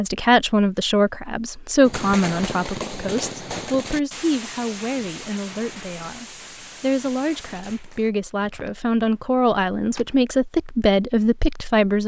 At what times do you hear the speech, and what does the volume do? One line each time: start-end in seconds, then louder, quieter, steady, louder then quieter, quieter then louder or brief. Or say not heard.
0.0-12.0 quieter then louder.